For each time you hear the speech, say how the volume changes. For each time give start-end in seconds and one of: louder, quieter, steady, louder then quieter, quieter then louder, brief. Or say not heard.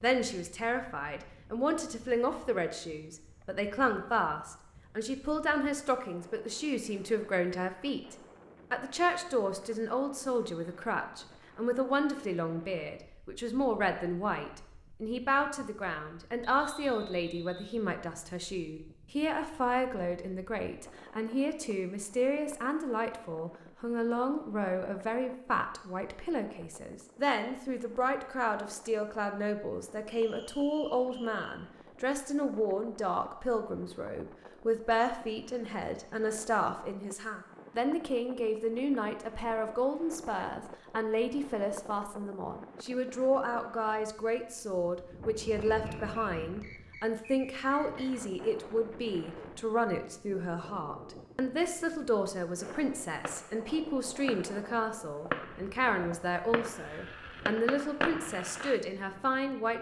0.0-59.7 steady.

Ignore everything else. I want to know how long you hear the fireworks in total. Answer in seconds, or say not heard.
6 s.